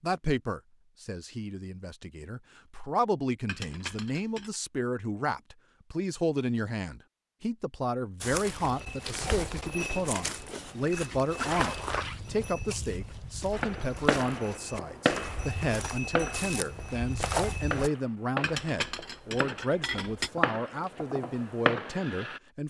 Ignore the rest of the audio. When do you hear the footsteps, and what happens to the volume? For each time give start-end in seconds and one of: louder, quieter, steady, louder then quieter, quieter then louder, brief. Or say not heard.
8.2-17.9 quieter then louder.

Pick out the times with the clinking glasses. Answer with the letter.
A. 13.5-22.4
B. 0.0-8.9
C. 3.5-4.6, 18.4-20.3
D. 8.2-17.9
C.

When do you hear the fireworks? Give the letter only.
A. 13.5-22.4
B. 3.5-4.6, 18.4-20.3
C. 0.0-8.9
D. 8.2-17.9
A.